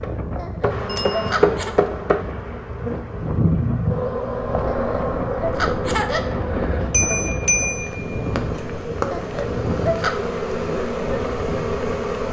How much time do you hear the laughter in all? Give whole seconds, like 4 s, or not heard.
4 s.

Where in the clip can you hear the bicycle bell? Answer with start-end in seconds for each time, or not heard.
0.8-1.4, 6.9-8.3.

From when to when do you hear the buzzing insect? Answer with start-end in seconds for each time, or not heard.
0.0-12.2.